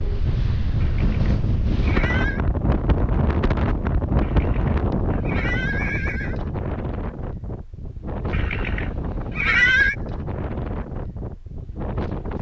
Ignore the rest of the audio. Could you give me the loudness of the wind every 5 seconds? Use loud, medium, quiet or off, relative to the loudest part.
loud, medium, medium.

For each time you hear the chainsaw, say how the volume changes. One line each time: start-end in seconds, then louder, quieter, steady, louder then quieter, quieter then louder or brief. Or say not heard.
not heard.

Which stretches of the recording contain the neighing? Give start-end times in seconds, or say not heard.
0.8-2.4, 4.2-6.3, 8.3-9.9.